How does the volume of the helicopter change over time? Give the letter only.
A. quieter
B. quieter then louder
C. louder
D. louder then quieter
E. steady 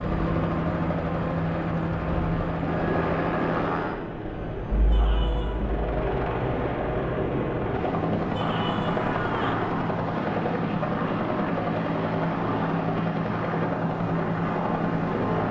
E.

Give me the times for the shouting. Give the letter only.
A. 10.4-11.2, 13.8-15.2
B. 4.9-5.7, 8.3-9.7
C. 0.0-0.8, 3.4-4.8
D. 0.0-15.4
B.